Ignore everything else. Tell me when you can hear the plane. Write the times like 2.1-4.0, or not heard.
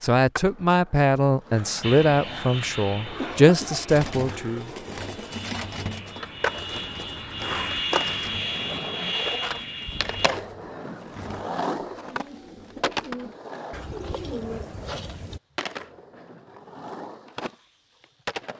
1.8-10.3.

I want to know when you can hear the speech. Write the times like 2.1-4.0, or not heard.
0.0-4.7.